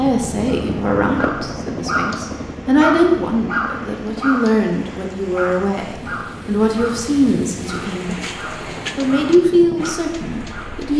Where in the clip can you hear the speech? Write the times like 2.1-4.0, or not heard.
0.0-8.2, 8.9-10.9.